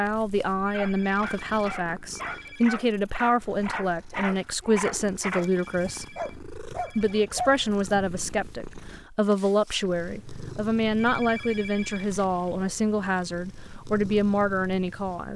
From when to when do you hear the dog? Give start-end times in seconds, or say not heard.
0.7-8.1.